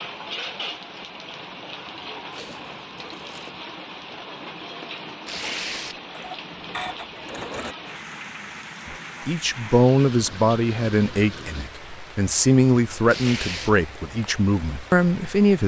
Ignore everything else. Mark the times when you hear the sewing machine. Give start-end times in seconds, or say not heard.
6.0-7.8.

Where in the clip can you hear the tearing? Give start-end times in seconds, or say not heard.
2.3-3.5, 5.2-6.0, 13.1-13.8.